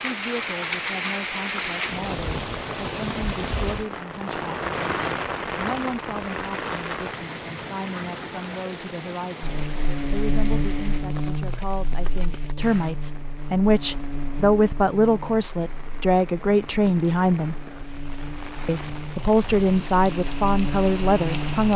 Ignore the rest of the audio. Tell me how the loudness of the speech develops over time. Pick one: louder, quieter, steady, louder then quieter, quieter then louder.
louder.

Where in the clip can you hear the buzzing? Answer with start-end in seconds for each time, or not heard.
9.4-21.7.